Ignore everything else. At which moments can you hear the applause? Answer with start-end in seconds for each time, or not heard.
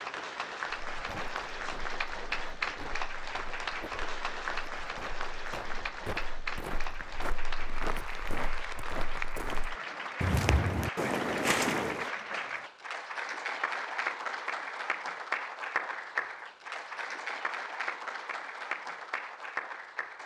0.0-20.2.